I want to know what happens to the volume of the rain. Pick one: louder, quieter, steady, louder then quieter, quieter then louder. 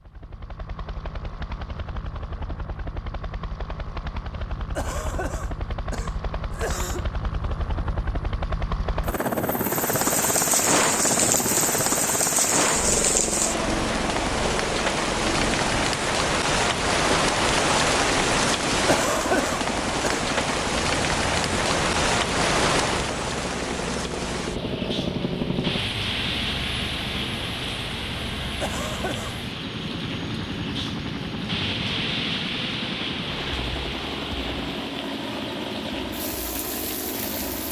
quieter.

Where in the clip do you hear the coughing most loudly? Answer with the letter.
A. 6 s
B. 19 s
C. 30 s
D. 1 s
B.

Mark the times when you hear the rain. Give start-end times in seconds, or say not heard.
9.7-37.6.